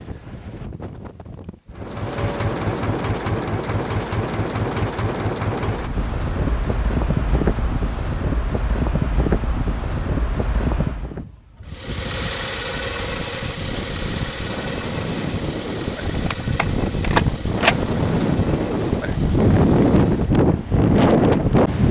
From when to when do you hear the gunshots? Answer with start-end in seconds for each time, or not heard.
16.1-17.8.